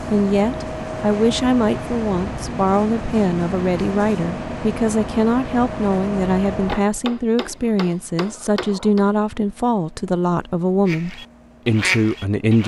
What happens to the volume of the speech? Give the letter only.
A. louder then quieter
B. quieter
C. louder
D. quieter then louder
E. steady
E.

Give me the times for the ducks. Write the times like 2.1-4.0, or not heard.
10.8-12.6.